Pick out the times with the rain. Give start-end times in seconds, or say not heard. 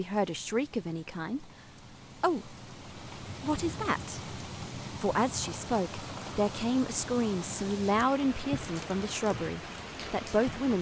0.0-10.7.